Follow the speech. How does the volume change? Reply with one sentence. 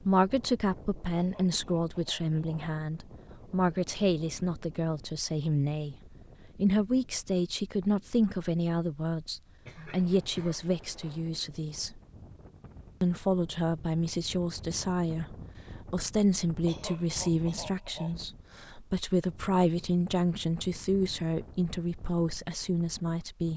The volume of the speech stays about the same.